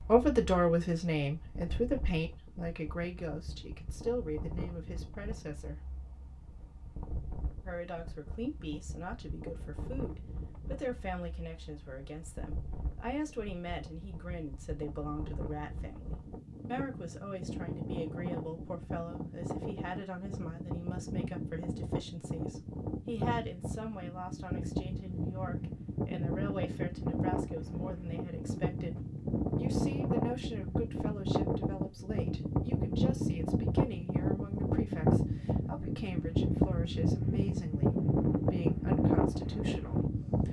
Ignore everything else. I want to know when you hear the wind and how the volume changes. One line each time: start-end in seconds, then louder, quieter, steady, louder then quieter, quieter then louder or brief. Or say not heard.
0.0-40.4 louder.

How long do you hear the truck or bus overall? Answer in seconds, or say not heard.
not heard.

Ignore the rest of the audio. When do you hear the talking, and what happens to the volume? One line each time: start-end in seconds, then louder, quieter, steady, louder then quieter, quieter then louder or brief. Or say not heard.
0.0-5.8 quieter
7.7-40.4 steady.